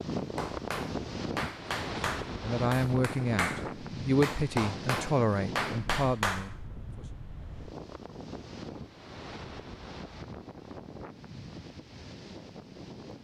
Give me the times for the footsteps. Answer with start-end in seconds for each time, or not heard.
not heard.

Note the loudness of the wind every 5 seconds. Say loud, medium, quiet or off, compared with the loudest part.
loud, medium, medium.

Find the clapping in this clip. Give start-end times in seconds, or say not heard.
0.1-6.5.